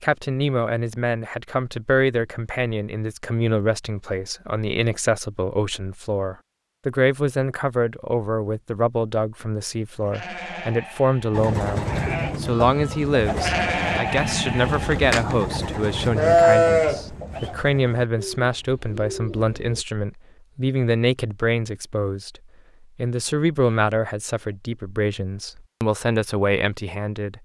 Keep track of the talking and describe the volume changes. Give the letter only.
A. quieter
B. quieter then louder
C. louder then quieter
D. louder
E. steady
E.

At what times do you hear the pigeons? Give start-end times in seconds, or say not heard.
11.3-19.9.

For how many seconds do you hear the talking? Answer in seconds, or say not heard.
27 s.